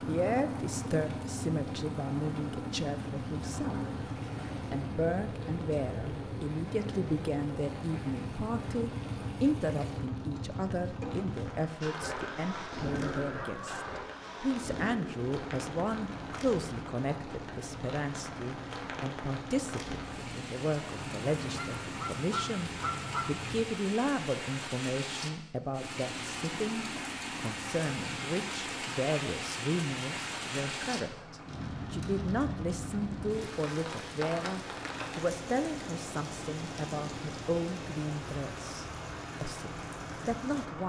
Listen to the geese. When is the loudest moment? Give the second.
23 s.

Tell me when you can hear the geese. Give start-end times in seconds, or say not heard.
12.2-13.9, 20.9-23.6.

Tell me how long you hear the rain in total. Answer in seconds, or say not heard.
41 s.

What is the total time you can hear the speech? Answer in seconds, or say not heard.
40 s.